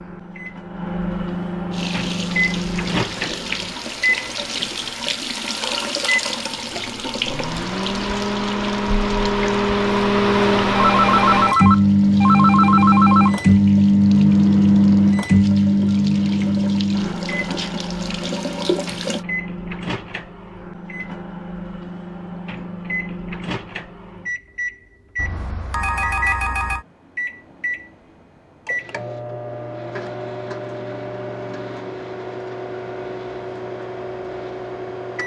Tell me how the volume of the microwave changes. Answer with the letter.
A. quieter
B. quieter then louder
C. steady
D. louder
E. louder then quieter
E.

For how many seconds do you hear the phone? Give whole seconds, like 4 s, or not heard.
4 s.